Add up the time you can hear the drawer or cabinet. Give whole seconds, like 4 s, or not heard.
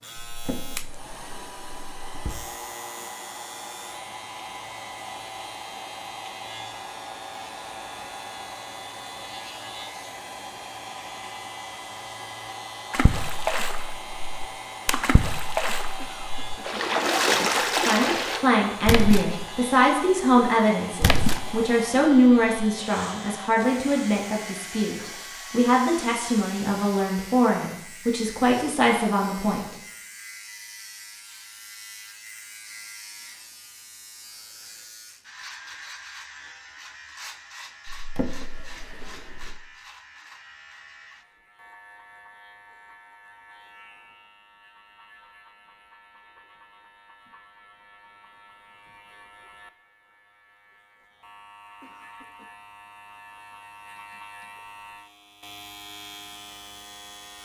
4 s.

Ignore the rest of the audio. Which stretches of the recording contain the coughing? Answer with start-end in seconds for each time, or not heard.
15.9-16.8, 51.8-52.6.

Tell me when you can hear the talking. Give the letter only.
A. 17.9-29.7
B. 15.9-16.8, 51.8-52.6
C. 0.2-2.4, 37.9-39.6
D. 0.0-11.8
A.